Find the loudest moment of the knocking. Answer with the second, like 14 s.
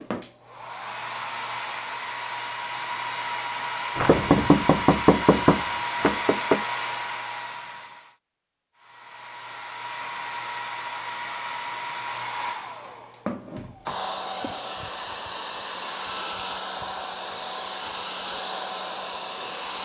4 s.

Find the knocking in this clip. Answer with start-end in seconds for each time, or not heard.
4.0-6.6.